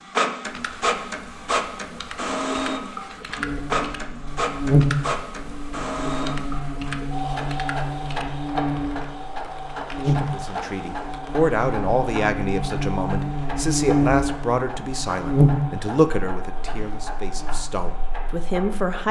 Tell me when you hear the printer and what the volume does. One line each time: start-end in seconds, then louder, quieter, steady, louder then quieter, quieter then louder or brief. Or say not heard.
0.0-19.0 quieter.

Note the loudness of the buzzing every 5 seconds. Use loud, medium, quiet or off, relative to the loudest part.
loud, medium, loud, loud.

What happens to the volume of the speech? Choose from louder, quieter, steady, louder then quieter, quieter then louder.
quieter.